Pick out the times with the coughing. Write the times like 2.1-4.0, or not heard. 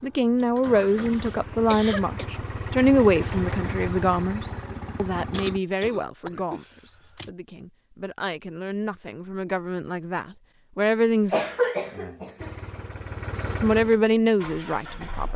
0.6-2.2, 5.3-7.3, 11.3-12.6.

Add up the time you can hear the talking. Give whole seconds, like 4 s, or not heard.
13 s.